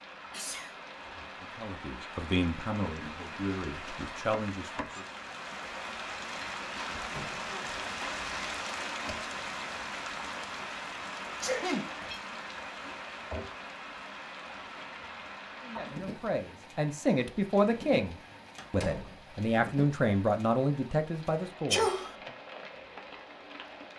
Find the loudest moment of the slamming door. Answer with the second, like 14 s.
19 s.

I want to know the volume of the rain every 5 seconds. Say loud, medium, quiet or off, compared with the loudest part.
medium, loud, loud, medium, medium.